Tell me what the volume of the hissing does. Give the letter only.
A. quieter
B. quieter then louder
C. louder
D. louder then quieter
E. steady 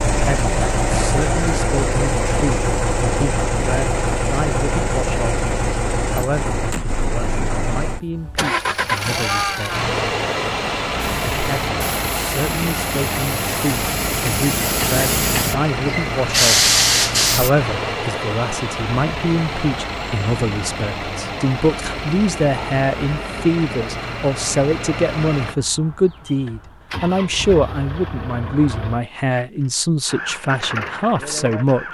C.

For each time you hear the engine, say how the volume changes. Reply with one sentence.
You can hear the engine from 0.0 to 31.8 s, getting quieter.